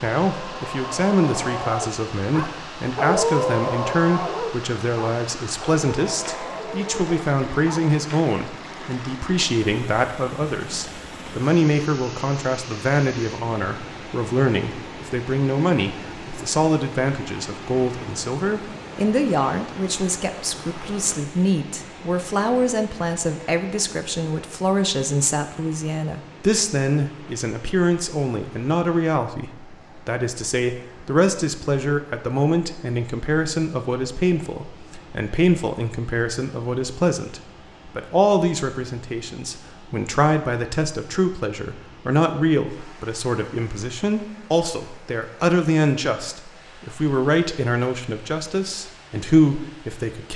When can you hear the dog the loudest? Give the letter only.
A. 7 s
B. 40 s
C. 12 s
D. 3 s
D.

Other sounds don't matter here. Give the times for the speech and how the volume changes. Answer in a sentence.
You can hear the speech from 0.0 to 50.3 s, at a steady volume.